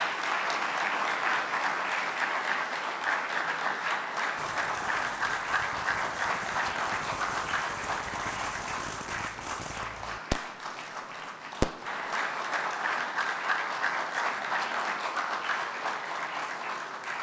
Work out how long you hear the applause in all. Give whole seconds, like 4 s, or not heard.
17 s.